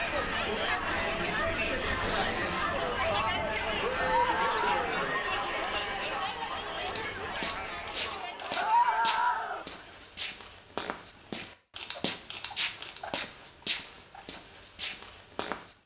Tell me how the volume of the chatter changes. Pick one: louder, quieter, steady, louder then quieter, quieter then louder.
quieter.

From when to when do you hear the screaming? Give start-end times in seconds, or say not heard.
4.0-4.8, 8.6-9.7.